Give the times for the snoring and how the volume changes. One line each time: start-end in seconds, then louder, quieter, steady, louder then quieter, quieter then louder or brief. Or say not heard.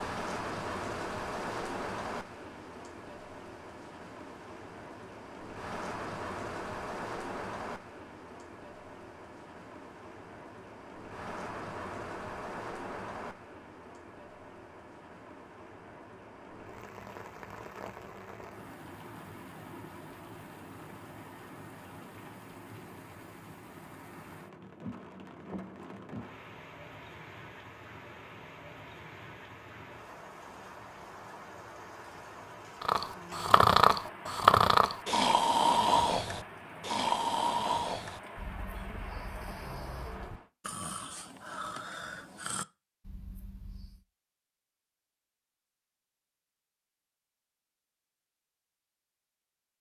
32.8-44.0 quieter.